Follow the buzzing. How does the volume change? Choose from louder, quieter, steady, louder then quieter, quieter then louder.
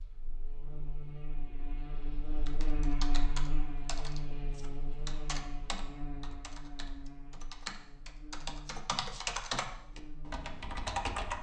louder then quieter.